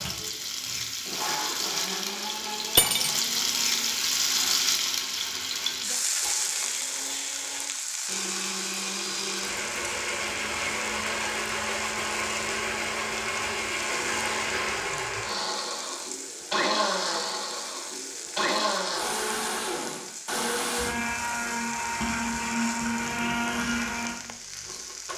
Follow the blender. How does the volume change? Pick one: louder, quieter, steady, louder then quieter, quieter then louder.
louder.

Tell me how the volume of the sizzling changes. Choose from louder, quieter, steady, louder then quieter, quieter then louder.
quieter.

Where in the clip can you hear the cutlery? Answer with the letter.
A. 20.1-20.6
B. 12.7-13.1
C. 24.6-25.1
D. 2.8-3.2
D.